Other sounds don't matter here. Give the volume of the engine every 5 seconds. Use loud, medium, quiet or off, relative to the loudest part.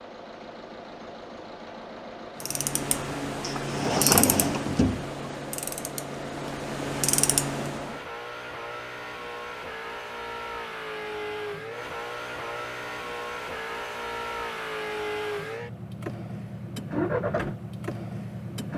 medium, medium, loud, loud.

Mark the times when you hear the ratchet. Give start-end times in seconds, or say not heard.
2.4-8.0.